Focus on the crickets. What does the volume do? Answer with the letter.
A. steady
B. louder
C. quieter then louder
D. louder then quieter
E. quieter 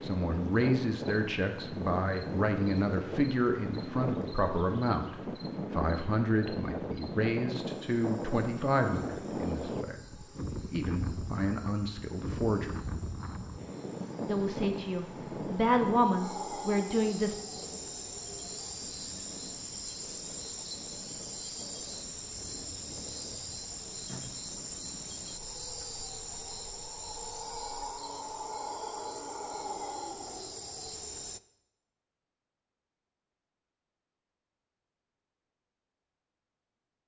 B.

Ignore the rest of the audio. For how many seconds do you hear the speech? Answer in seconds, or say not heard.
15 s.